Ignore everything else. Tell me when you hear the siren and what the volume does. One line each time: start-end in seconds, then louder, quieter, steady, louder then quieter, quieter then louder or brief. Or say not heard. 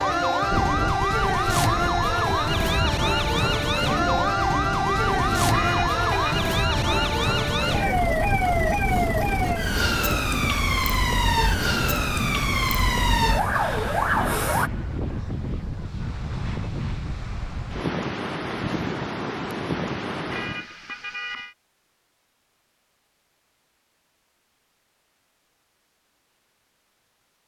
0.0-14.7 steady.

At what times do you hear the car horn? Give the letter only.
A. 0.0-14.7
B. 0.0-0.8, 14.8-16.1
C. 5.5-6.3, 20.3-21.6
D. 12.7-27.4
C.